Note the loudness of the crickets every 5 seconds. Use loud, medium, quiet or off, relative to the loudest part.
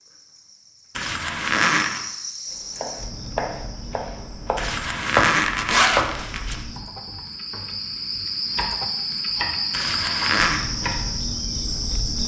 medium, loud, loud.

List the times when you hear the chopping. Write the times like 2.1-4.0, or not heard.
2.6-11.0.